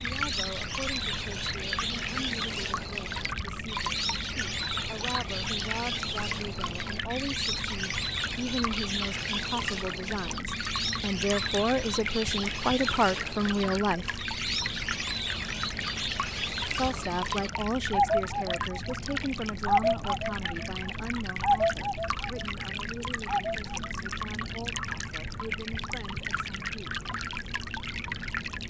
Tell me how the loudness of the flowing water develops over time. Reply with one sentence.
The loudness of the flowing water stays about the same.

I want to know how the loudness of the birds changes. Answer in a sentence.
The volume of the birds goes up.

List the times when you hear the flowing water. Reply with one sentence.
You can hear the flowing water from 0.0 to 28.6 s.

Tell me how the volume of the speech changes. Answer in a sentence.
The loudness of the speech goes up, then down.